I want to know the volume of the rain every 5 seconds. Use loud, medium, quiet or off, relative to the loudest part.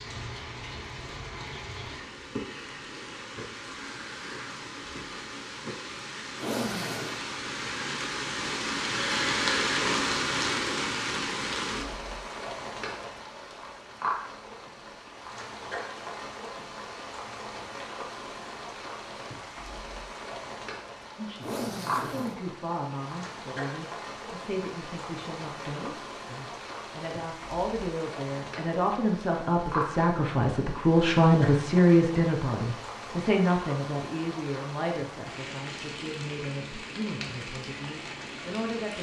medium, loud, loud, medium, medium, medium, medium, medium.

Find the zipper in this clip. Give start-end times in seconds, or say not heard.
6.3-7.2, 21.4-22.4.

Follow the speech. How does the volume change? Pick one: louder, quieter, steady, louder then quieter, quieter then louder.
louder then quieter.